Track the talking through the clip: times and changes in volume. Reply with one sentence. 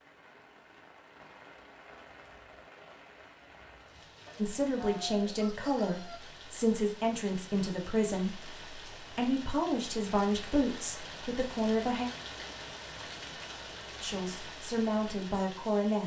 The talking can be heard from 4.3 to 12.1 s, at a steady volume; and briefly from 14.0 to 16.0 s.